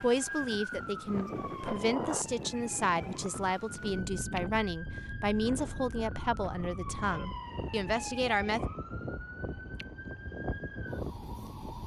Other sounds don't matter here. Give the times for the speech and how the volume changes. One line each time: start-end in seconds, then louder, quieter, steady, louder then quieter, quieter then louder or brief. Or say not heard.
0.0-8.6 steady.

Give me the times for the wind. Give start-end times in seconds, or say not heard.
0.0-11.8.